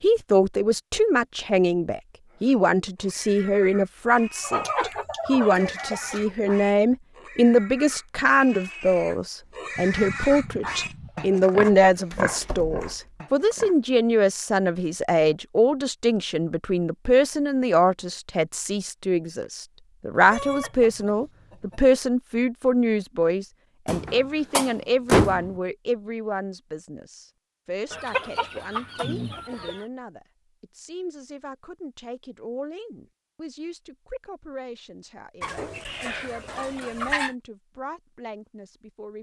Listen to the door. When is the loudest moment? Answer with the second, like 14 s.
25 s.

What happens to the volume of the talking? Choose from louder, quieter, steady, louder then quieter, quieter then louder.
quieter.